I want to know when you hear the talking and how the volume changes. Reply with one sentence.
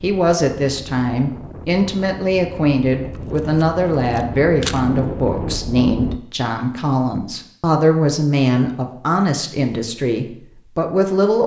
The talking can be heard from 0.0 to 11.4 s, at a steady volume.